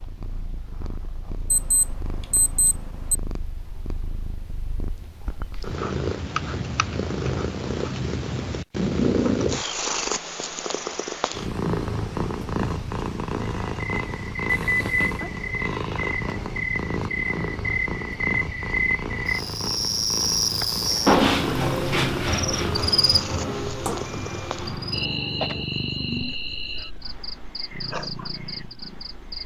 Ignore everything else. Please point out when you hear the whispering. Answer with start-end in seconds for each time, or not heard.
not heard.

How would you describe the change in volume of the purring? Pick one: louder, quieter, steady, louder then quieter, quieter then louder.
louder then quieter.